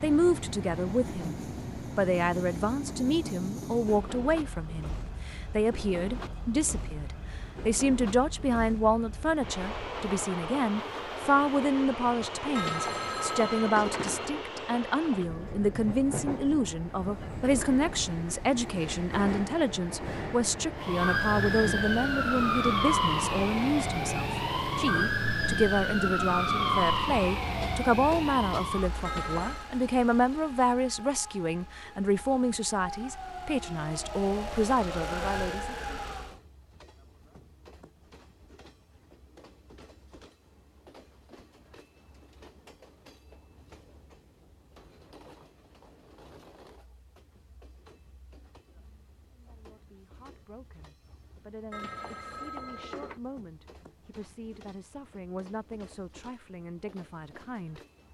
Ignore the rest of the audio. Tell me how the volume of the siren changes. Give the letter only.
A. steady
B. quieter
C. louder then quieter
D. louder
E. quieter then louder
E.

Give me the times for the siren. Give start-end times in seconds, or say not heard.
20.8-36.4.